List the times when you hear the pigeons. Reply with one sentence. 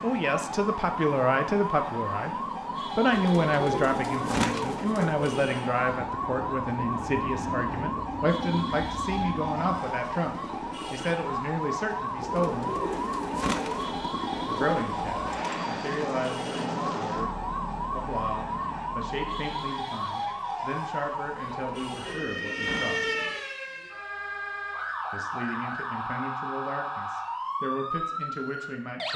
The pigeons can be heard from 3.1 to 5.4 s, from 12.2 to 14.1 s and from 21.4 to 23.4 s.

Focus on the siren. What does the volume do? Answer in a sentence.
The loudness of the siren stays about the same.